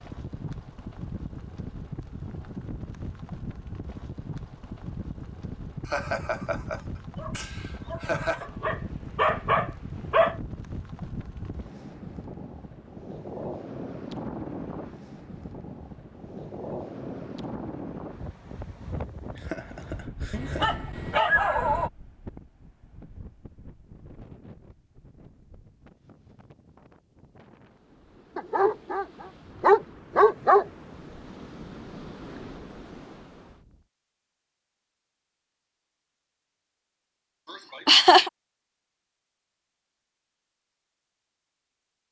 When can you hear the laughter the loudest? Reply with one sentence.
The volume of the laughter peaks at 38 seconds.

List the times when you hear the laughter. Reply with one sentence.
The laughter can be heard from 5.8 to 8.4 s, from 19.4 to 20.9 s and from 37.5 to 38.3 s.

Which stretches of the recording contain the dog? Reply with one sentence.
The dog can be heard from 8.4 to 10.3 s, from 20.3 to 21.9 s and from 28.4 to 30.6 s.